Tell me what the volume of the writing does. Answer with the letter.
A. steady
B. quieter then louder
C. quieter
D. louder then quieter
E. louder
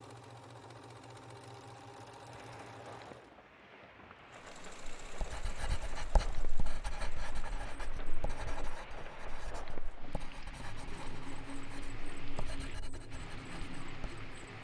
C.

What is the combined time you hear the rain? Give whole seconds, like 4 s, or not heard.
12 s.